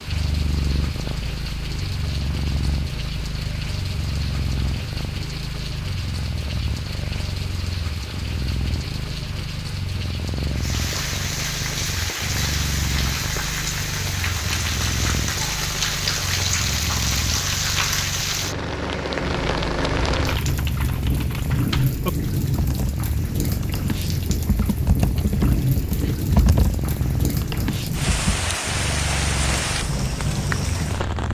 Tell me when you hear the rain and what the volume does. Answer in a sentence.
The rain can be heard from 0.0 to 31.2 s, getting louder.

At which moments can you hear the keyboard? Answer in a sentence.
You can hear the keyboard from 20.1 to 28.4 s.